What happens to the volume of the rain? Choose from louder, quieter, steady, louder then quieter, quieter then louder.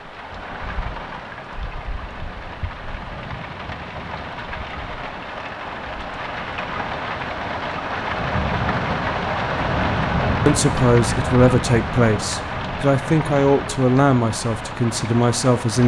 louder then quieter.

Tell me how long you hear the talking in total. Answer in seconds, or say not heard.
5 s.